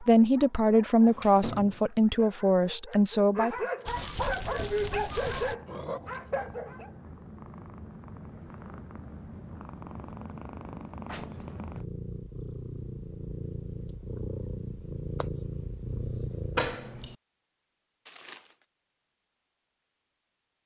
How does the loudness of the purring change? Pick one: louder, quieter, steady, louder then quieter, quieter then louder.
louder.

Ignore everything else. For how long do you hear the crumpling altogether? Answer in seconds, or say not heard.
2 s.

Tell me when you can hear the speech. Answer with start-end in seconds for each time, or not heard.
0.0-3.5.